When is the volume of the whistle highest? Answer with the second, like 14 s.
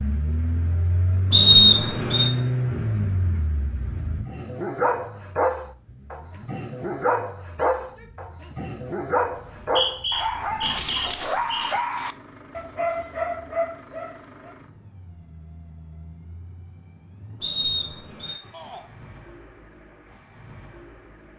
2 s.